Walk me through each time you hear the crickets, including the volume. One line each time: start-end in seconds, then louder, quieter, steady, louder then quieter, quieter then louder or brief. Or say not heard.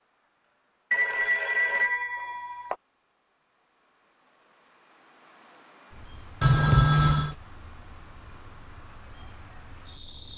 0.0-10.3 louder.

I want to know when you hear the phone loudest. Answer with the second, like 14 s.
7 s.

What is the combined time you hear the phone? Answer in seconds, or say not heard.
3 s.